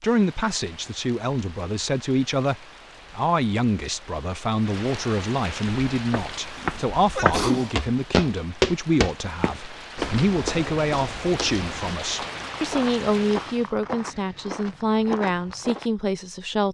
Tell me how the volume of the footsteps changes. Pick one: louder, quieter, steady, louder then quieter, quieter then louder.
quieter.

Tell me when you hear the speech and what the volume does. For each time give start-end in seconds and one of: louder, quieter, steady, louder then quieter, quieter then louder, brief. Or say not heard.
0.0-16.6 steady.